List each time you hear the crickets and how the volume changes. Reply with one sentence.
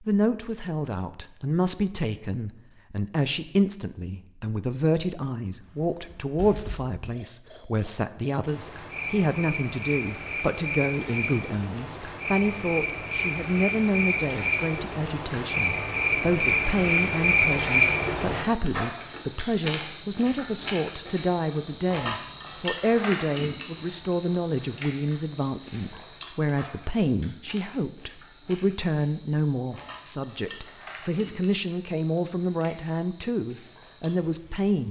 The crickets can be heard from 5.5 to 34.8 s, getting louder then quieter.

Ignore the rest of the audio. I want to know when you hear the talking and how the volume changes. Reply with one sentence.
You can hear the talking from 0.0 to 34.8 s, at a steady volume.